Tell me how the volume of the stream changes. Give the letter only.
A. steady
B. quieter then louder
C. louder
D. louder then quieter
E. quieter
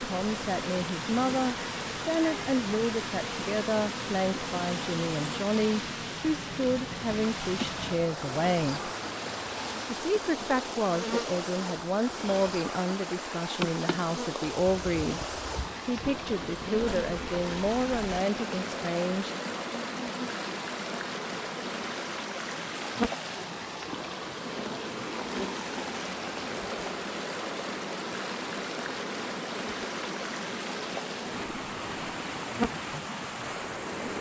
A.